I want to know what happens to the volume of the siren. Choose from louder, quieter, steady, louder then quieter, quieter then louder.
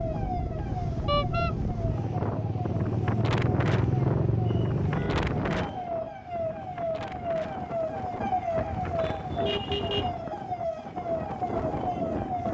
louder.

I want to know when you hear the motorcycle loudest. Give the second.
4 s.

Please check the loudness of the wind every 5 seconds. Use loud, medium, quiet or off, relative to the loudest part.
loud, loud, medium.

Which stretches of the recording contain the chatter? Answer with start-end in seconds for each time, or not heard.
not heard.